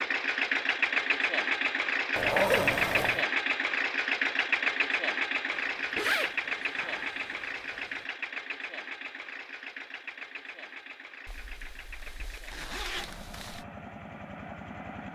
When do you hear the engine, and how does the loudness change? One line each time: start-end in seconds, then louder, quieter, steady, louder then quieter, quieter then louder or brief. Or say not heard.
0.0-15.0 quieter.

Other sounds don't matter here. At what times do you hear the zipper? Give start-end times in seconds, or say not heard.
2.1-3.2, 5.5-8.0, 11.2-13.7.